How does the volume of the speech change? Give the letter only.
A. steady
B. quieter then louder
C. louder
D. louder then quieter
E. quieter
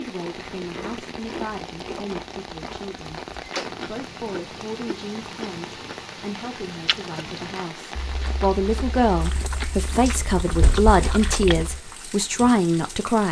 C.